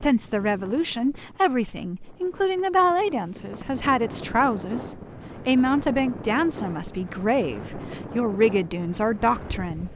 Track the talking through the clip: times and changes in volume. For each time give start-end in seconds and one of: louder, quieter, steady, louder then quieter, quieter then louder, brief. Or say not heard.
0.0-9.9 steady.